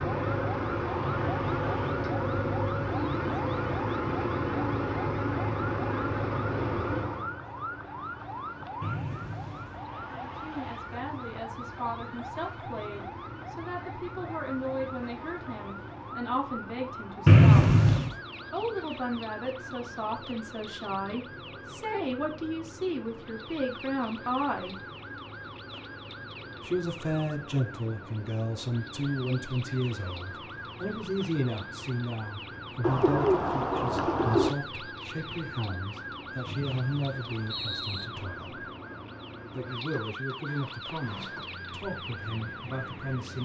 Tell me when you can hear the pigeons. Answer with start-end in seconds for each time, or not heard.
32.8-34.5.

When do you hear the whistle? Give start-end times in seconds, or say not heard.
8.8-9.8, 17.2-18.1, 36.5-38.0.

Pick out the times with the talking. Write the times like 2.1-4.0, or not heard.
10.1-17.7, 18.5-24.8, 26.6-38.6, 39.5-43.4.